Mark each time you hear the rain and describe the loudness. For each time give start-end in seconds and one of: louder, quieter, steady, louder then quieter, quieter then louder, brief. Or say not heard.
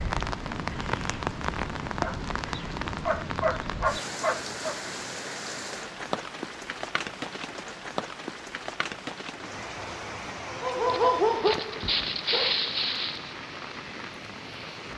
0.0-14.9 quieter.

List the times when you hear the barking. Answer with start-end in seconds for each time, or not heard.
2.0-4.8, 10.4-13.3.